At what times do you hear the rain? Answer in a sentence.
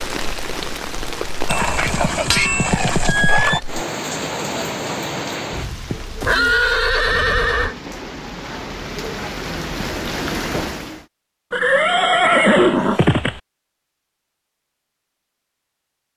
You can hear the rain from 0.0 to 11.1 s.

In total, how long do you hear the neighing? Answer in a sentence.
The neighing can be heard for 6 seconds in total.